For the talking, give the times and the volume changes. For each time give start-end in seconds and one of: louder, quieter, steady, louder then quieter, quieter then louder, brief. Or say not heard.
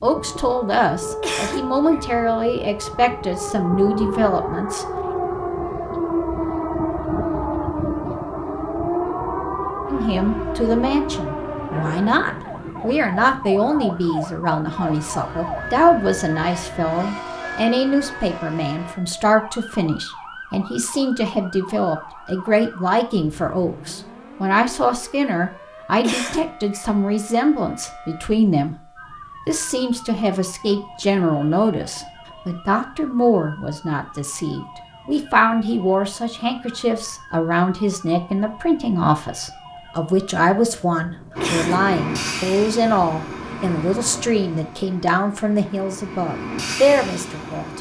0.0-4.8 steady
9.9-28.8 steady
29.4-47.7 steady.